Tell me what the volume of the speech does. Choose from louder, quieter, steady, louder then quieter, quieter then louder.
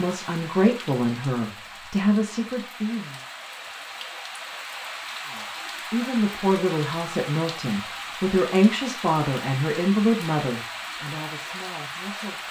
quieter.